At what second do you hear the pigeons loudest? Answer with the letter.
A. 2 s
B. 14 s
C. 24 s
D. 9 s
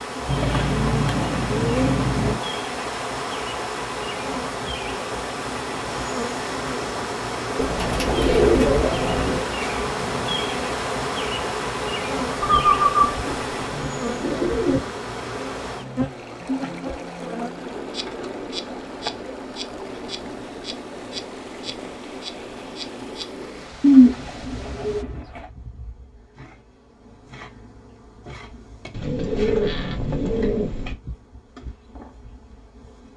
C.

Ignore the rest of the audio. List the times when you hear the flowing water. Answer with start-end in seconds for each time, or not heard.
0.0-25.1.